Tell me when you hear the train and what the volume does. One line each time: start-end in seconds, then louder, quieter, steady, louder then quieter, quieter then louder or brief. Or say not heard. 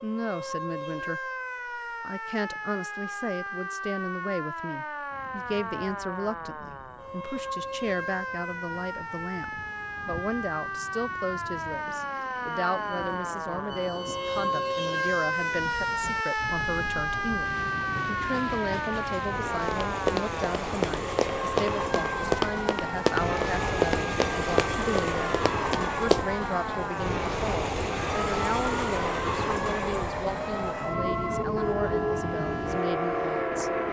5.1-33.8 louder.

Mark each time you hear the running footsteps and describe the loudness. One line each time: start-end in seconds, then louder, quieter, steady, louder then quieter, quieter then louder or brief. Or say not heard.
19.6-26.2 quieter.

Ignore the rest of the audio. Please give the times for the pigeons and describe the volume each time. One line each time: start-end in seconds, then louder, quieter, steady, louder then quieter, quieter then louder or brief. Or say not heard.
not heard.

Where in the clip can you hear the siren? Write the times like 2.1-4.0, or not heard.
0.0-33.8.